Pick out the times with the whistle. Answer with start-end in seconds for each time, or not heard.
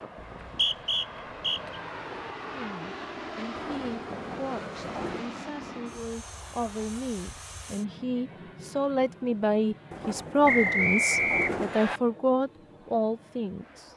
0.2-1.8, 10.4-12.0.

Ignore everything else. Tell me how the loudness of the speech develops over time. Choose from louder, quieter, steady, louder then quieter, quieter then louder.
louder.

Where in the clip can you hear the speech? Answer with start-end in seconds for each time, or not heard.
2.5-13.9.